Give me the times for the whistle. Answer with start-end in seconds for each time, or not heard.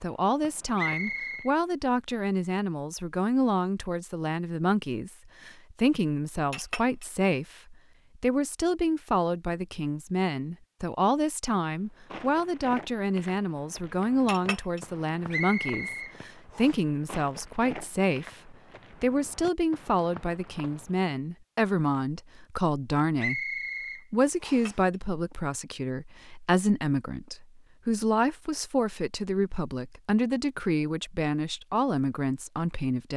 0.8-1.5, 15.3-16.8, 23.1-24.8.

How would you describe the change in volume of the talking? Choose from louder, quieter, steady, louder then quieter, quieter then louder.
steady.